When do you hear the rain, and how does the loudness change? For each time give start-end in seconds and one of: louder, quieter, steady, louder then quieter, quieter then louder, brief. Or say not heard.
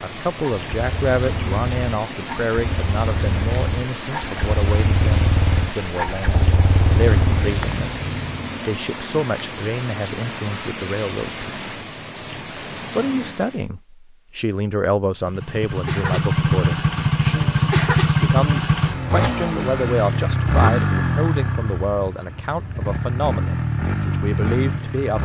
0.0-13.7 steady.